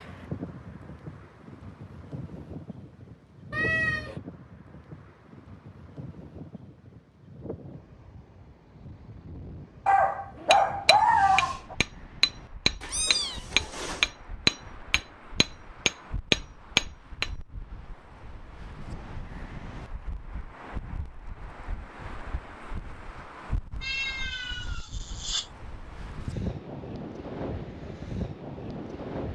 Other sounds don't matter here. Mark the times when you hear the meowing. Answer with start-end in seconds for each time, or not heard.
3.5-4.2, 12.8-14.1, 23.8-25.5.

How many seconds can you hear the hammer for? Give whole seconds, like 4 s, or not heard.
7 s.